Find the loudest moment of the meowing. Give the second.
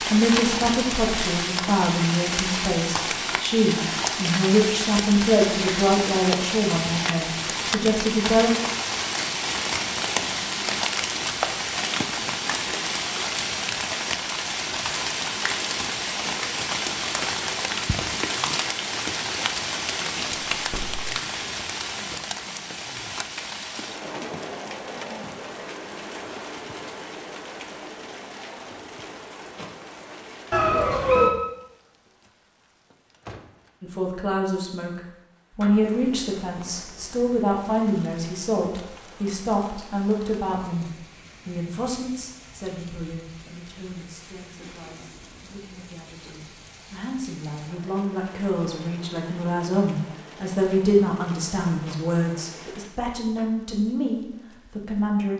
31 s.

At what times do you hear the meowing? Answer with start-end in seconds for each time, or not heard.
20.3-21.0, 30.5-31.3.